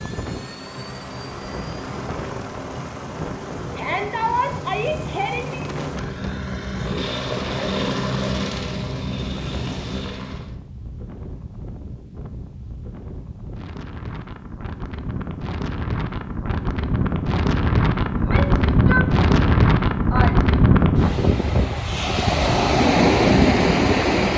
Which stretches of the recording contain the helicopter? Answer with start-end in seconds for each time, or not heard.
0.0-10.6.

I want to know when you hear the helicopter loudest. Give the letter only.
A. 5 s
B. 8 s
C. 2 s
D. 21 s
B.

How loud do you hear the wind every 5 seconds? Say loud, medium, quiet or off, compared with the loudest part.
quiet, quiet, quiet, loud, loud.